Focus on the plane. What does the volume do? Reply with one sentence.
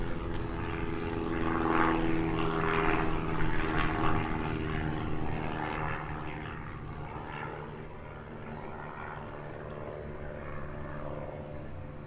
The volume of the plane goes down.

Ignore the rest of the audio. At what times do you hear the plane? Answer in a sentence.
You can hear the plane from 0.0 to 12.0 s.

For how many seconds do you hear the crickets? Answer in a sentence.
The crickets can be heard for 12 seconds in total.